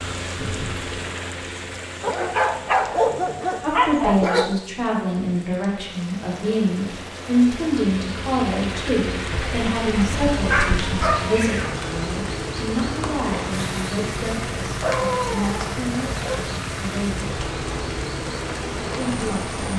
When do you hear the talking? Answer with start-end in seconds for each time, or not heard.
3.6-17.2, 18.9-19.7.